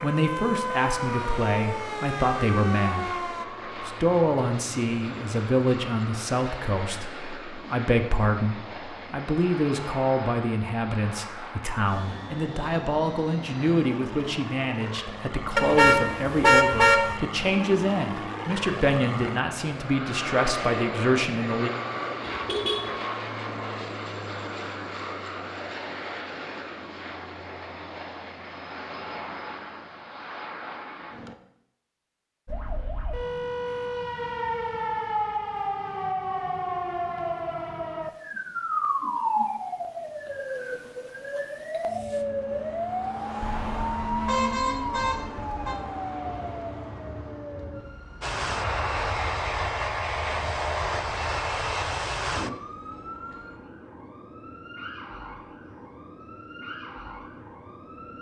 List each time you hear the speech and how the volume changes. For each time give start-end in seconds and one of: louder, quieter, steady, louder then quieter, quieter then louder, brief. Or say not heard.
0.0-21.7 steady.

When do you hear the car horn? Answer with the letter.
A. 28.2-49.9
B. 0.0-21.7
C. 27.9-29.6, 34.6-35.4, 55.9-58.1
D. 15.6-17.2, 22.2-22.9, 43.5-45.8
D.